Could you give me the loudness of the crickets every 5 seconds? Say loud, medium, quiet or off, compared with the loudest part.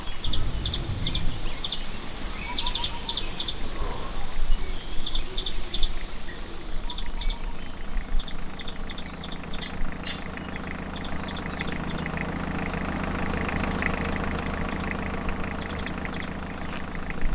loud, medium, quiet, quiet.